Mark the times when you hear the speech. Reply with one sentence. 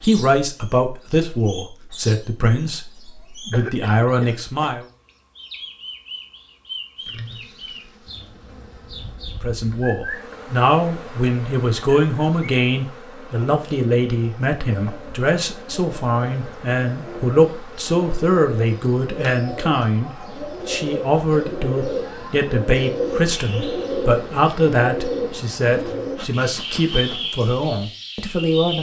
The speech can be heard from 0.0 to 4.8 s and from 9.4 to 28.7 s.